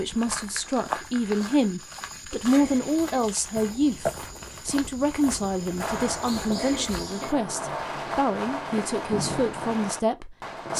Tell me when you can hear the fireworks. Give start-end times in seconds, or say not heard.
5.8-10.7.